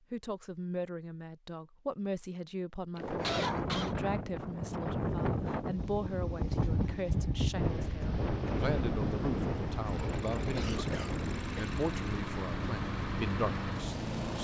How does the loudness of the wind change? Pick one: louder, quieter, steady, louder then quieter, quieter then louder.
quieter.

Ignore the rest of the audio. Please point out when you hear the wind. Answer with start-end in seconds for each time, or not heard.
3.0-14.1.